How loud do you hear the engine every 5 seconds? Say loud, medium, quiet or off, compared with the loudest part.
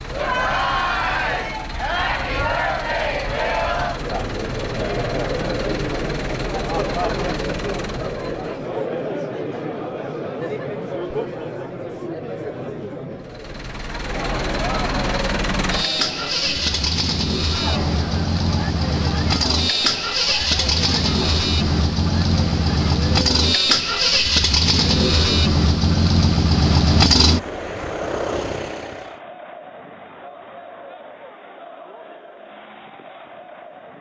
quiet, quiet, medium, loud, loud, loud, off.